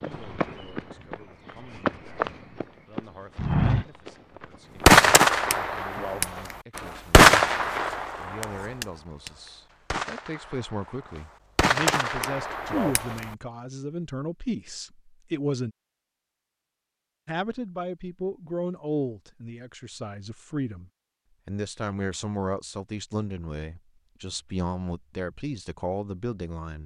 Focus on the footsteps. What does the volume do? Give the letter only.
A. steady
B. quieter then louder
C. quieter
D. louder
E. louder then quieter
E.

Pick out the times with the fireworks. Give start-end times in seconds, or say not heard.
4.8-13.2.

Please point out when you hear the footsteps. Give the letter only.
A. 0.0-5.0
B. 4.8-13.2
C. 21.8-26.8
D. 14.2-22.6
A.